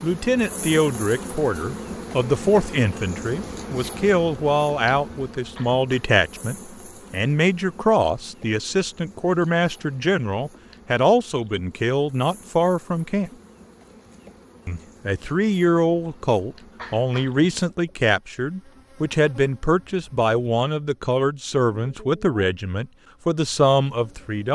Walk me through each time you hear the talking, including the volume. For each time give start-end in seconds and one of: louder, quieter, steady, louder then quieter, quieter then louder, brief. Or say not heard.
0.0-13.3 steady
14.7-24.4 steady.